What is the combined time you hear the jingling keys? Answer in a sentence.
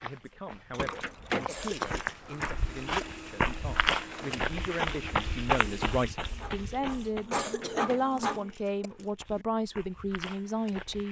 You can hear the jingling keys for 4 seconds altogether.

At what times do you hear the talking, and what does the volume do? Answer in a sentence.
You can hear the talking from 0.0 to 11.0 s, getting louder.